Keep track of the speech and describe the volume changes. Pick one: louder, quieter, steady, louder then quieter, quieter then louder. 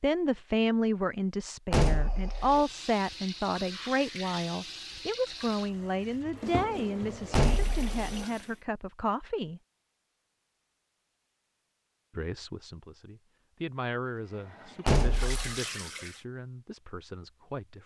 quieter.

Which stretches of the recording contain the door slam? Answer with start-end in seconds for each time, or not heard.
1.7-2.6, 7.3-8.2, 14.8-15.6.